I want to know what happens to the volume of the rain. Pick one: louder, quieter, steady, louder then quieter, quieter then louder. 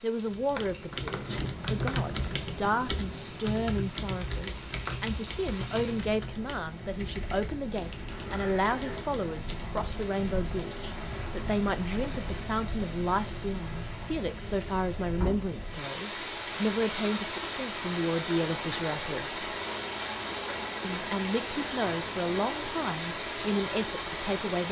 louder.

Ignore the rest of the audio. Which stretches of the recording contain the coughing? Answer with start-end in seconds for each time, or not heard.
not heard.